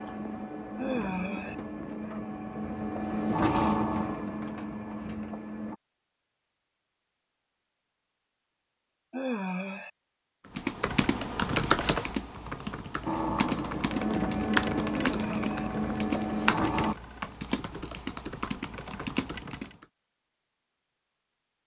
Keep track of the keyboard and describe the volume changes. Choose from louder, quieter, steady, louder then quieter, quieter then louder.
quieter.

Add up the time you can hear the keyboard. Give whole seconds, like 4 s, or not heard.
9 s.